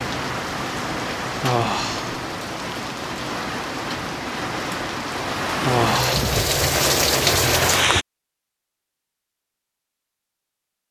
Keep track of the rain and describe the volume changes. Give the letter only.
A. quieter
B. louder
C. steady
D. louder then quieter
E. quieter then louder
B.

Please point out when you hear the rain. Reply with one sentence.
You can hear the rain from 0.0 to 8.1 s.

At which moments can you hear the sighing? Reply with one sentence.
You can hear the sighing from 1.4 to 2.1 s and from 5.6 to 6.2 s.